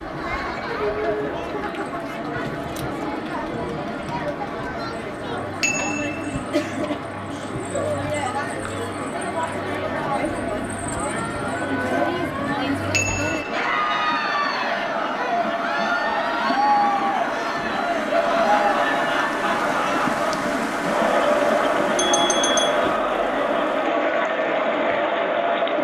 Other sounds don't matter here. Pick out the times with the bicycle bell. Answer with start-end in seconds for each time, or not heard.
5.6-6.4, 12.9-13.8, 21.9-22.8.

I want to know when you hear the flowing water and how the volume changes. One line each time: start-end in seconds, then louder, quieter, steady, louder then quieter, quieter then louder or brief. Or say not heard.
0.0-25.7 louder.